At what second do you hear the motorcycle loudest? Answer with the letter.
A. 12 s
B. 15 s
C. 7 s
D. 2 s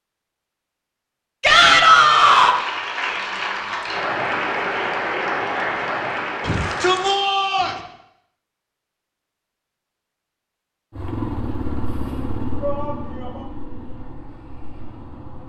A.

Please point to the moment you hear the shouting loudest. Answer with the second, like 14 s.
2 s.